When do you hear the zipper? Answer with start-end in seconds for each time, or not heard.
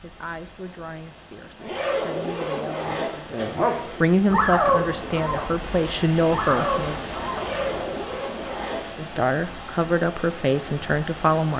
1.6-4.0, 7.3-8.8.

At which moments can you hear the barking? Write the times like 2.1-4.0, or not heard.
2.9-7.9.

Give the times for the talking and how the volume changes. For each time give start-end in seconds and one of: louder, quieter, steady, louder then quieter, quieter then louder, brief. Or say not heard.
0.0-7.0 louder
8.9-11.5 brief.